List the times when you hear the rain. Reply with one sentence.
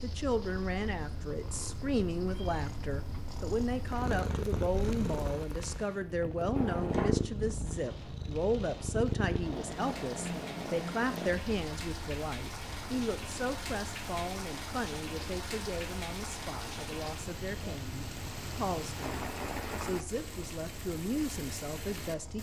The rain can be heard from 3.9 to 22.3 s.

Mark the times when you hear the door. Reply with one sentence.
The door can be heard from 6.5 to 7.2 s.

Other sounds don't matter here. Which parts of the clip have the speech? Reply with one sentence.
You can hear the speech from 0.0 to 22.3 s.